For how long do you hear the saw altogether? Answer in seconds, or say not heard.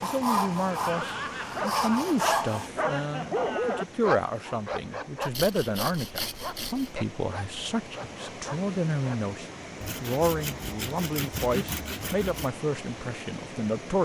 7 s.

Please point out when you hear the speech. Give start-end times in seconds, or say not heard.
0.0-14.0.